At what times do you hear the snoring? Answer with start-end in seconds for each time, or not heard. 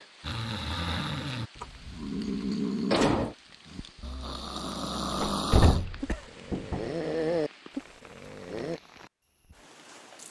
0.2-8.8.